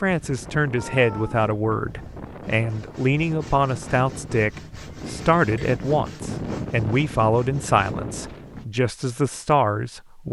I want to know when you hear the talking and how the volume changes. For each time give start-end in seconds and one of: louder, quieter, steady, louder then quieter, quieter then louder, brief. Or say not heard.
0.0-10.2 steady.